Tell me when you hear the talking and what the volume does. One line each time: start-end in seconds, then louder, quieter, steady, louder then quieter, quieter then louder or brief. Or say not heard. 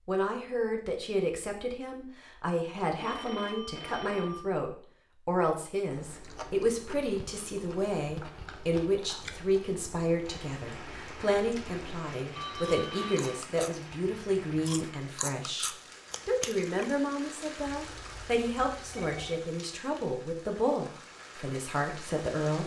0.1-22.6 steady.